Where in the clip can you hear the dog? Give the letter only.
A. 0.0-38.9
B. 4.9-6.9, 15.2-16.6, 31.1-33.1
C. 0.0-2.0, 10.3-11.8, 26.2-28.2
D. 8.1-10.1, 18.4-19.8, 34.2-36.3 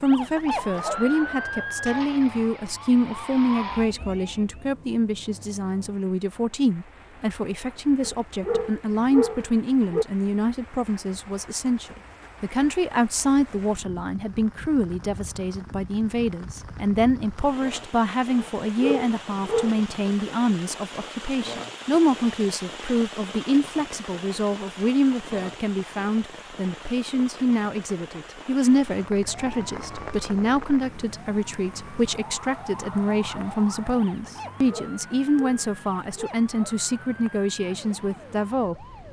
D.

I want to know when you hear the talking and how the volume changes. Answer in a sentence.
The talking can be heard from 0.0 to 38.9 s, at a steady volume.